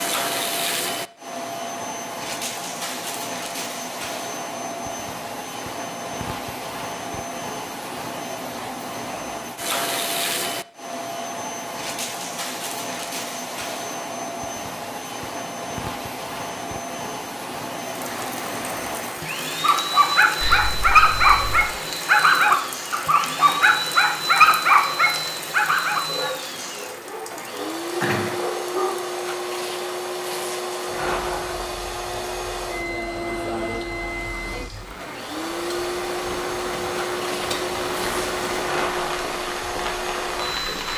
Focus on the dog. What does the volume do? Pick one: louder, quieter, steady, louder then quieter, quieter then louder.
quieter.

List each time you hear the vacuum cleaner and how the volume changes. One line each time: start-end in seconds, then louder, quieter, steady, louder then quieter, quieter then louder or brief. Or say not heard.
0.0-40.9 steady.